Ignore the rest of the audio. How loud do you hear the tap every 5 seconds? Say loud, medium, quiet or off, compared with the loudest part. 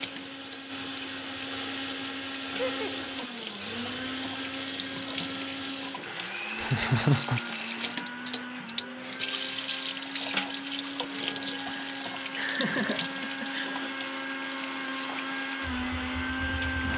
medium, loud, loud, medium.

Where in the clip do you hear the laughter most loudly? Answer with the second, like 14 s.
7 s.